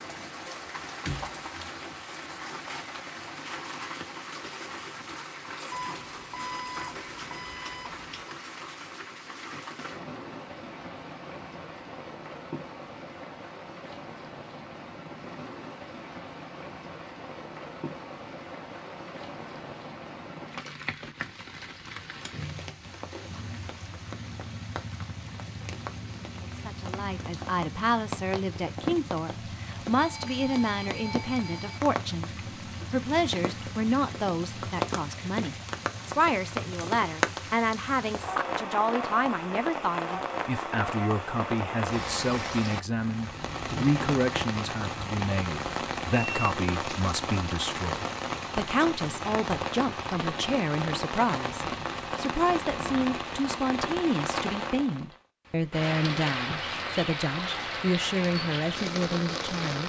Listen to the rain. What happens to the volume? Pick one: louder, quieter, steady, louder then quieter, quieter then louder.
louder.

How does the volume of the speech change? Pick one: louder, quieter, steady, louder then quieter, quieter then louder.
steady.